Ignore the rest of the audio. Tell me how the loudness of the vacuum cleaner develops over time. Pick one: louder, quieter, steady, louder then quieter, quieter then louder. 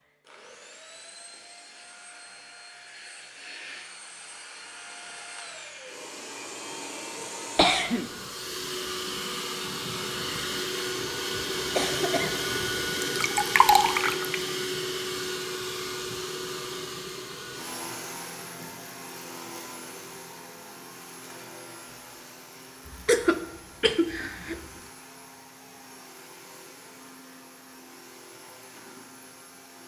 louder then quieter.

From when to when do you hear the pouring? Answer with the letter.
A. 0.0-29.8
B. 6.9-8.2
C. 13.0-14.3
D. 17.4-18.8
C.